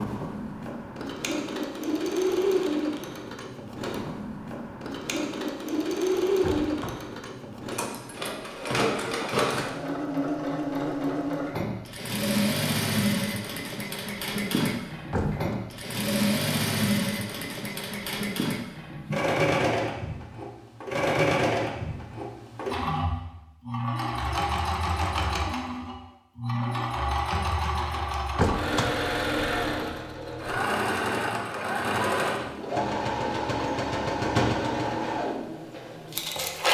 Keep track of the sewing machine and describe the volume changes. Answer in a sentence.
The loudness of the sewing machine stays about the same.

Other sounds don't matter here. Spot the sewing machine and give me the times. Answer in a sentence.
The sewing machine can be heard from 0.0 to 36.6 s.